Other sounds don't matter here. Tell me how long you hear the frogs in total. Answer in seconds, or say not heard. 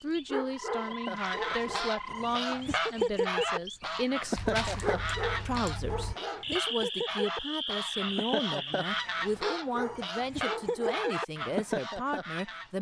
9 s.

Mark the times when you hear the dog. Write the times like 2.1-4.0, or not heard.
0.2-1.9, 4.8-6.5, 9.4-11.1.